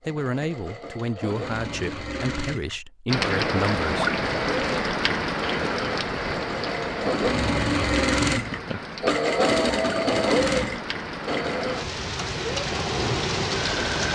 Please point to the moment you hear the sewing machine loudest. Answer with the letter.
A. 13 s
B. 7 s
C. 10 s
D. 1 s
C.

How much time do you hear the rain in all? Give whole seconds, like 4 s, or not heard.
11 s.